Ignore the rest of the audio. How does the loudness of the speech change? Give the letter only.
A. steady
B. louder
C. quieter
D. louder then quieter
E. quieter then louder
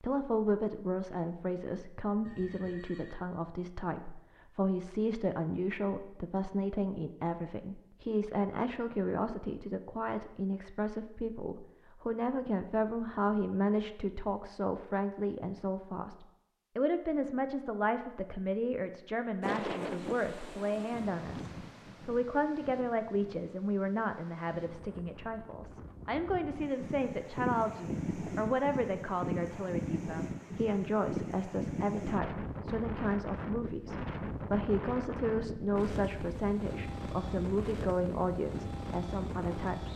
A.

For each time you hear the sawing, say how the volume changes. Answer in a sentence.
The sawing can't be heard in this clip.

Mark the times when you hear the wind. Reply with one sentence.
The wind can be heard from 19.4 to 39.9 s.